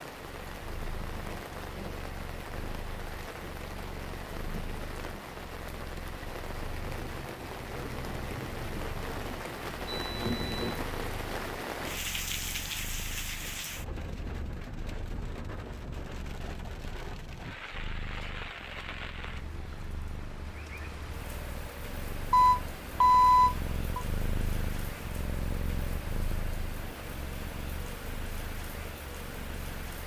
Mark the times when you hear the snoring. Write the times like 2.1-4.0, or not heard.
not heard.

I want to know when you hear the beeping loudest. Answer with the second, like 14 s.
23 s.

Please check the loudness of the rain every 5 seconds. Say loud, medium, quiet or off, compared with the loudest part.
medium, loud, loud, medium, medium, medium.